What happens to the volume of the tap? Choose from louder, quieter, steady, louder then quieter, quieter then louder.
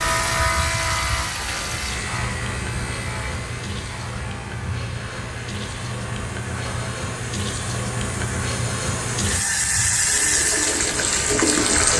louder.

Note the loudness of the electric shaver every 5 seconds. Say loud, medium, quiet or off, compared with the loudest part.
loud, medium, loud.